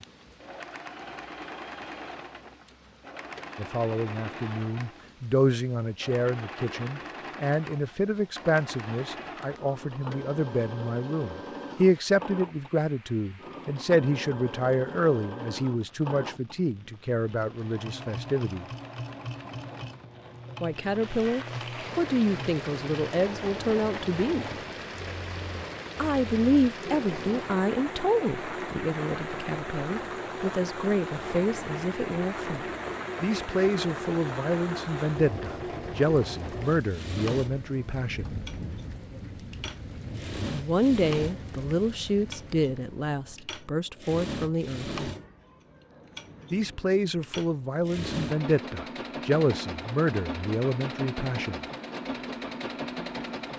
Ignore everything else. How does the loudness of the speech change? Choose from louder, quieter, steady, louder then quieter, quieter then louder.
steady.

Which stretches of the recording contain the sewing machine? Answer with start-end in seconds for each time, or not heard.
0.0-53.5.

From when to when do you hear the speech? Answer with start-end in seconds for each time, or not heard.
3.5-18.6, 20.6-24.6, 25.9-38.3, 40.5-44.9, 46.5-51.6.